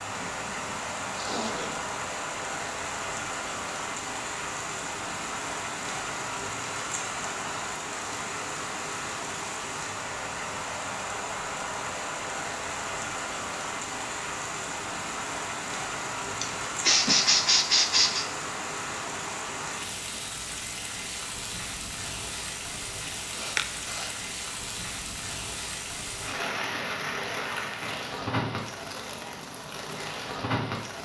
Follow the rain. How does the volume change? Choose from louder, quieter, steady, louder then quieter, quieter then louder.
steady.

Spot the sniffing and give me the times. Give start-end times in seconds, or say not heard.
0.1-1.9, 16.4-18.2, 23.4-24.1.